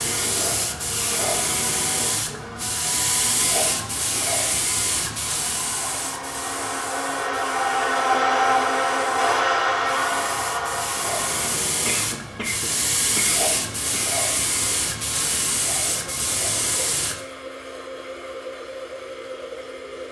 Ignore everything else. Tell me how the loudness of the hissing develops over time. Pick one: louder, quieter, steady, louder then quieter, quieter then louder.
quieter then louder.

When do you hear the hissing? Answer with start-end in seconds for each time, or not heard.
0.0-17.2.